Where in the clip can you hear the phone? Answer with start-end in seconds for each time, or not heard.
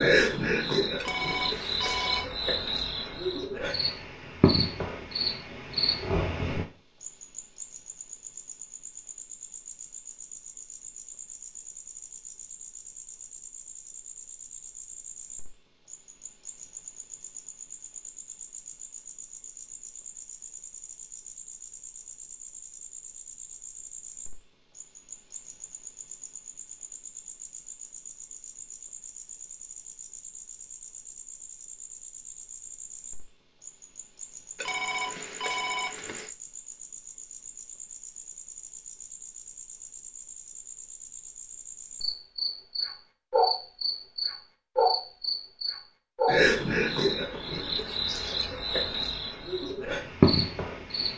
0.9-2.3, 34.5-36.3.